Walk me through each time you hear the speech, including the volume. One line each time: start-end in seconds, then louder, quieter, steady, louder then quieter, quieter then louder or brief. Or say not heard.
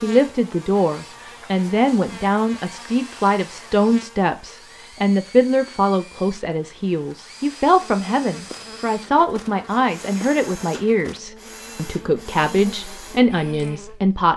0.0-14.3 steady.